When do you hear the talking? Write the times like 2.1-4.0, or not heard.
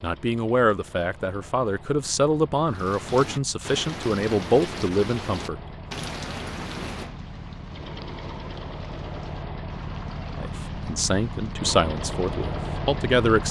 0.0-5.6, 10.3-13.4.